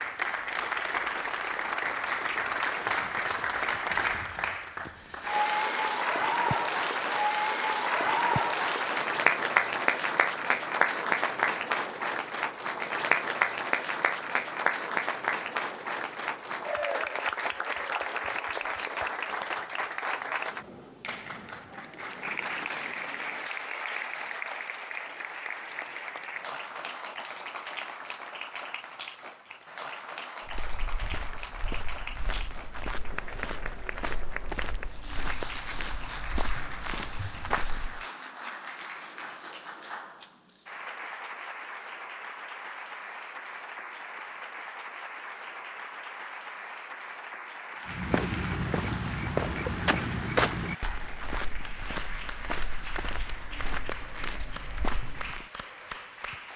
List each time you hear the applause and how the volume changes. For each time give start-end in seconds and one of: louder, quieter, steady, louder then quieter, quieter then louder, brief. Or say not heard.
0.0-56.5 quieter.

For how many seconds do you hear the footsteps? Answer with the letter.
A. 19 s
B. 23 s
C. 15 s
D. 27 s
C.